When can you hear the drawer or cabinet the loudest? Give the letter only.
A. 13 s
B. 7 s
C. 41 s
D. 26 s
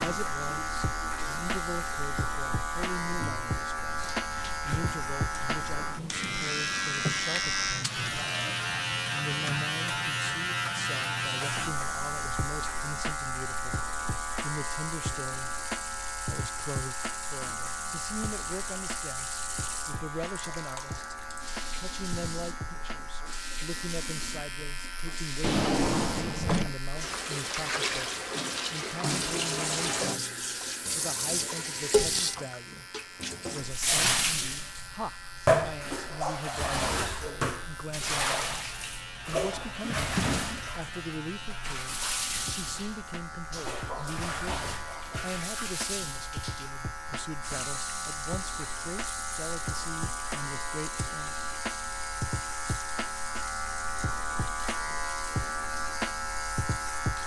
D.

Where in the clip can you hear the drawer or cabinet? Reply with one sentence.
You can hear the drawer or cabinet from 5.9 to 7.2 s, from 25.4 to 26.8 s and from 39.8 to 40.6 s.